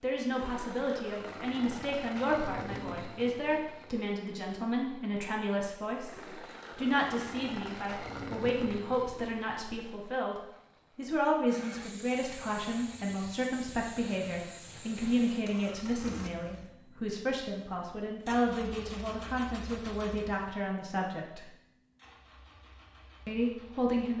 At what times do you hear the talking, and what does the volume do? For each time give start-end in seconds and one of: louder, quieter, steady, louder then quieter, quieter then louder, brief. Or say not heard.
0.0-21.5 steady
23.2-24.1 brief.